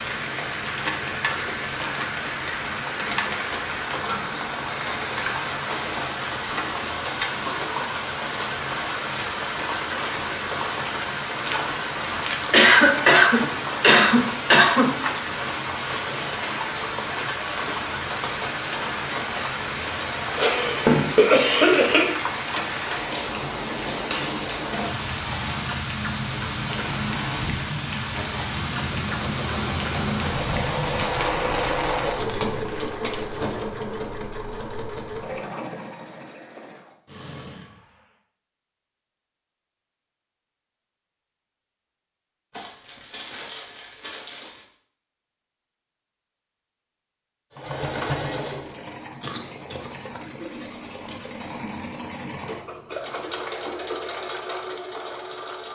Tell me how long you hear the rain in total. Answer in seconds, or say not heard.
32 s.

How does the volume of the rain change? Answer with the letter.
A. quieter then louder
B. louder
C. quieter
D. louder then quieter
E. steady
E.